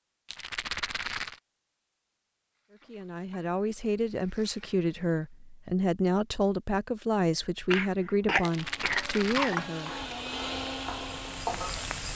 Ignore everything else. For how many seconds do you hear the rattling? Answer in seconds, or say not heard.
2 s.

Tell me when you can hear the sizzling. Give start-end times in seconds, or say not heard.
2.5-5.3, 8.8-12.1.